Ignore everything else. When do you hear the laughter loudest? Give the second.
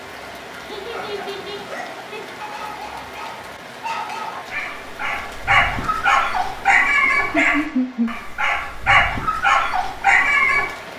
8 s.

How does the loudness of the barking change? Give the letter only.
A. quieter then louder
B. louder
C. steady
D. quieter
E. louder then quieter
B.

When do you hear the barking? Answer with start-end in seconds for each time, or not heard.
0.9-10.7.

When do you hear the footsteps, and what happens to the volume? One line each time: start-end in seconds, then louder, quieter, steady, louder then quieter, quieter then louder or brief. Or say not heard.
not heard.